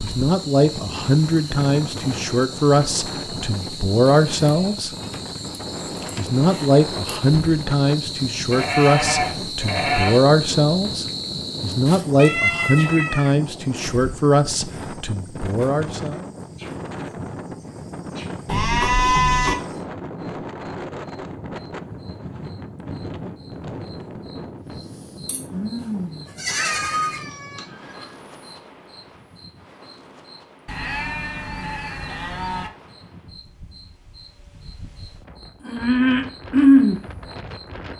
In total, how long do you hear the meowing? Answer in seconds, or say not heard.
3 s.